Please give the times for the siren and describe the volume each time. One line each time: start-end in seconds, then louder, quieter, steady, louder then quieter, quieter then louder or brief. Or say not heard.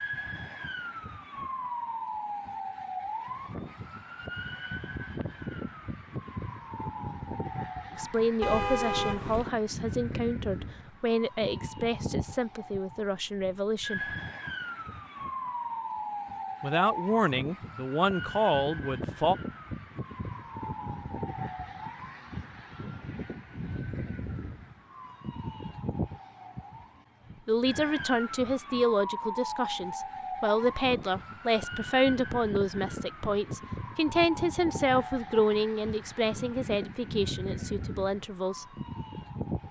0.0-39.6 steady.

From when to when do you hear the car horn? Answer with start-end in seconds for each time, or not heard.
8.4-9.5.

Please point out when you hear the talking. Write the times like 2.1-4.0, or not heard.
8.0-14.0, 16.6-19.4, 27.4-38.6.